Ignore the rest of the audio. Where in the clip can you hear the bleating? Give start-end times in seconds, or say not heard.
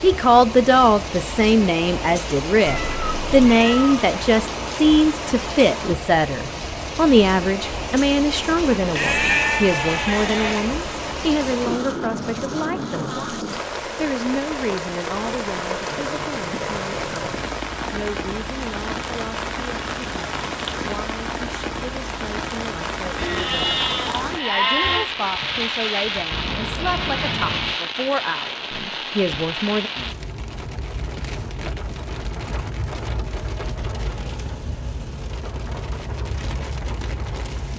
8.9-10.7, 23.1-25.1.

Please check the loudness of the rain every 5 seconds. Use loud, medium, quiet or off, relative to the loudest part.
loud, loud, loud, loud, loud, loud, medium, medium.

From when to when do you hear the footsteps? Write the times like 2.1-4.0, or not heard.
not heard.